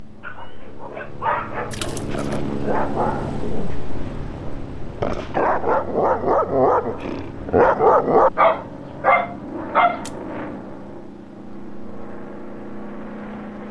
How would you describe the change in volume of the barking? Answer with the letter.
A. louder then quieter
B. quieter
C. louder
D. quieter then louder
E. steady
C.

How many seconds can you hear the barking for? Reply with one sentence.
The barking can be heard for 10 seconds in total.